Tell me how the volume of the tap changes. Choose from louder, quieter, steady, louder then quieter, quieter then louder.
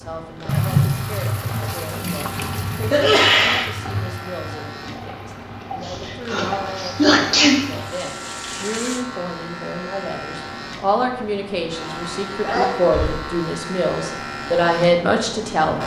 quieter.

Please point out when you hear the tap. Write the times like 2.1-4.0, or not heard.
0.5-9.1.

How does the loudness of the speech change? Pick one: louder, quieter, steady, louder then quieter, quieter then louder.
louder.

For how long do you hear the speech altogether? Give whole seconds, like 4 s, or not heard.
16 s.